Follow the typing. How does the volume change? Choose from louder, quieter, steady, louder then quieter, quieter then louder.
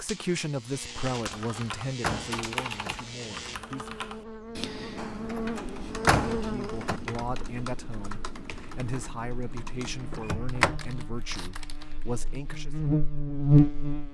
quieter.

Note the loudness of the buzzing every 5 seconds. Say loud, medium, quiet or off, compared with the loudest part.
quiet, medium, loud.